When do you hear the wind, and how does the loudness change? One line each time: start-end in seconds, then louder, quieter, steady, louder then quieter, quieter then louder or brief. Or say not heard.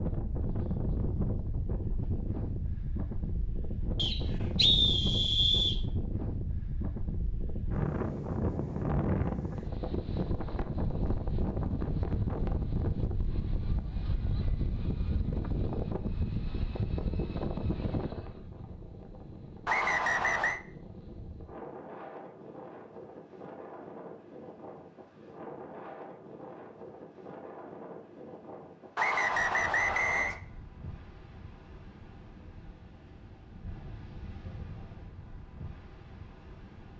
0.0-36.9 quieter.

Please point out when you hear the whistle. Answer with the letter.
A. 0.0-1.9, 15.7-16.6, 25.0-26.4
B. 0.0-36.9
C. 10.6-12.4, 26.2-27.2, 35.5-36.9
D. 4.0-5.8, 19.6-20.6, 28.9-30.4
D.